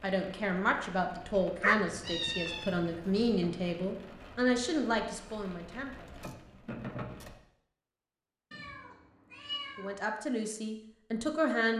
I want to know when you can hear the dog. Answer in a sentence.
You can hear the dog from 1.6 to 3.4 s.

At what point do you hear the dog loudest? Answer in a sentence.
The volume of the dog peaks at 2 seconds.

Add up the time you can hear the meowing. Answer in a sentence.
The meowing can be heard for 3 seconds in total.